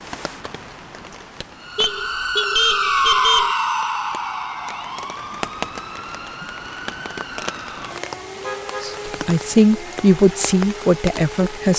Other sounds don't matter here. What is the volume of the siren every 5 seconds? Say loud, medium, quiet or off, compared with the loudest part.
loud, quiet, quiet.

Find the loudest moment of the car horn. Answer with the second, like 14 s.
3 s.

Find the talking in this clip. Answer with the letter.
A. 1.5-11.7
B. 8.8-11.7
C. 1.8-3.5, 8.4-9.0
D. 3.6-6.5
B.